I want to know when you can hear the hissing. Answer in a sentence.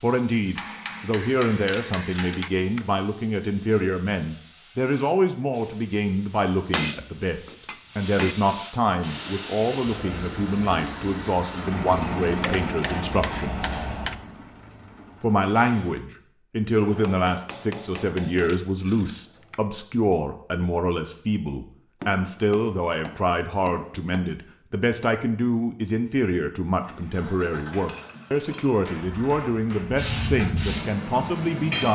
The hissing can be heard from 0.0 to 14.2 s and from 29.8 to 31.9 s.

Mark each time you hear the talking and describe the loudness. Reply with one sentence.
You can hear the talking from 0.0 to 13.6 s, at a steady volume; and from 15.2 to 31.9 s, at a steady volume.